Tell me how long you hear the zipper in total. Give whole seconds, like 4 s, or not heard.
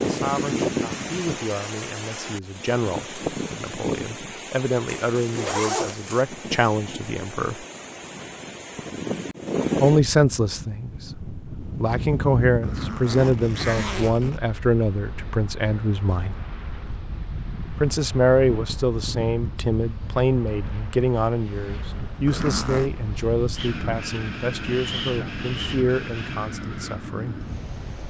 4 s.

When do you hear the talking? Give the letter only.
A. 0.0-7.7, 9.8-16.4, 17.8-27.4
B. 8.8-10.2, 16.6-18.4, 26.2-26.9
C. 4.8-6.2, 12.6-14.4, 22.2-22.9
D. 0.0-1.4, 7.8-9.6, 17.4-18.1
A.